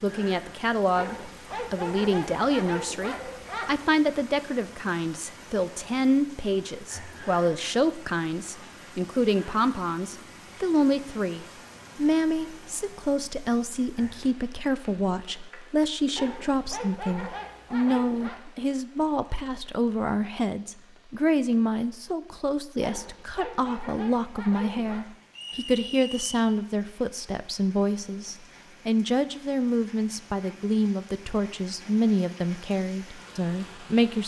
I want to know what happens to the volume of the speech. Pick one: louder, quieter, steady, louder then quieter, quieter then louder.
steady.